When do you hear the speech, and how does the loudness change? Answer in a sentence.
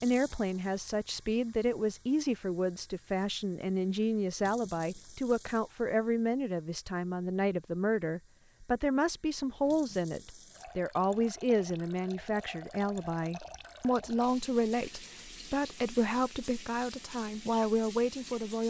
The speech can be heard from 0.0 to 18.6 s, at a steady volume.